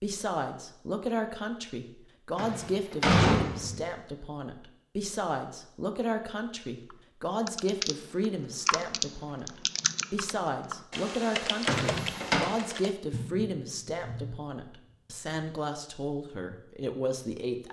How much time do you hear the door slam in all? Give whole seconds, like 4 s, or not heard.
2 s.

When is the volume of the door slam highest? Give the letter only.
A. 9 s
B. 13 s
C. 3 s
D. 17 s
C.